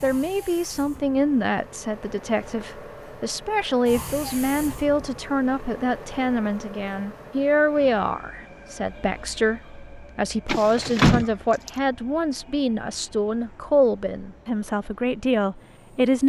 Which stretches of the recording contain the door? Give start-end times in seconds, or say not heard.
10.4-11.7.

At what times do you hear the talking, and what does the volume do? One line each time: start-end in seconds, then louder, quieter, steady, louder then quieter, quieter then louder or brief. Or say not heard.
0.0-16.2 steady.